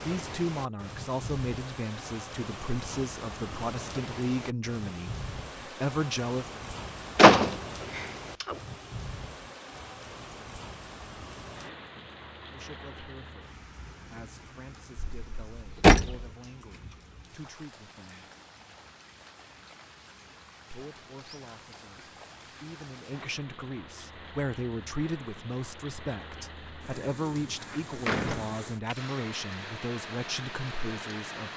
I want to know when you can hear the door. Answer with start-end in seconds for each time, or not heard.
7.2-8.6, 14.9-16.2, 27.6-29.3.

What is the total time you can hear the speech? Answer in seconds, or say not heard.
23 s.